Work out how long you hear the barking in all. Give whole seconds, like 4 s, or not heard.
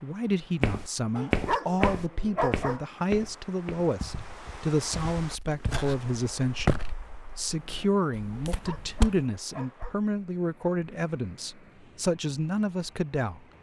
3 s.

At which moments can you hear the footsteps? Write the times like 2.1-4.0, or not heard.
0.6-9.2.